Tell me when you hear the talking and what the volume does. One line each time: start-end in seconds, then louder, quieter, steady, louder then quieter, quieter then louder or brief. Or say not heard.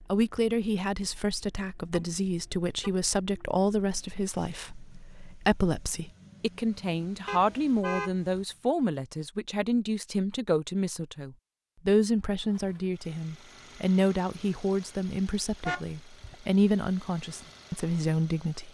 0.1-18.6 steady.